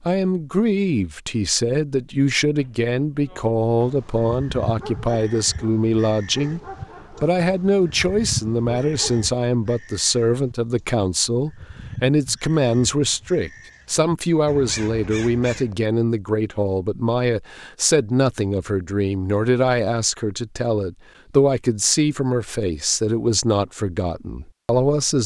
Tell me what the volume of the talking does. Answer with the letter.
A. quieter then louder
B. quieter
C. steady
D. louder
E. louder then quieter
C.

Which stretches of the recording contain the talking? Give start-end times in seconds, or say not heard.
0.0-25.2.